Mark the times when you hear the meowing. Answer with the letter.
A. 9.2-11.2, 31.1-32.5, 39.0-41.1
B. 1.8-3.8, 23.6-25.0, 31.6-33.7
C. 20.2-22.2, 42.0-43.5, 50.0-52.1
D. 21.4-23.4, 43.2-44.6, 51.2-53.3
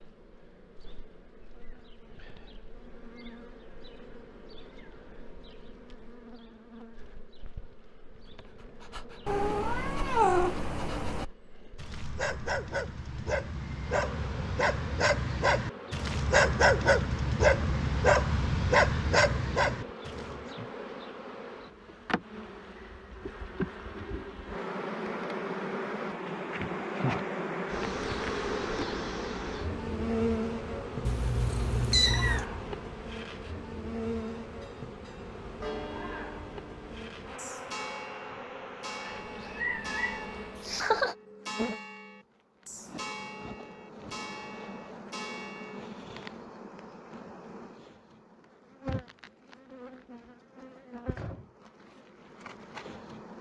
A.